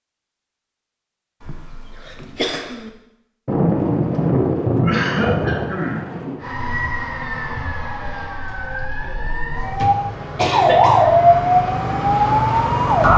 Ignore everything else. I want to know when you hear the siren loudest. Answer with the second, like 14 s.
11 s.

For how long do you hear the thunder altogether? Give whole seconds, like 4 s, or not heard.
3 s.